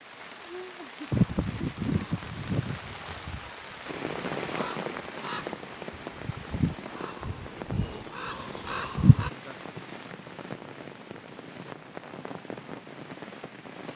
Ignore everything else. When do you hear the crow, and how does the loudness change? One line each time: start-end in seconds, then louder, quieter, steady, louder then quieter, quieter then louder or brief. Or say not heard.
1.1-9.3 quieter then louder.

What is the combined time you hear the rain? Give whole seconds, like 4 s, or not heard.
14 s.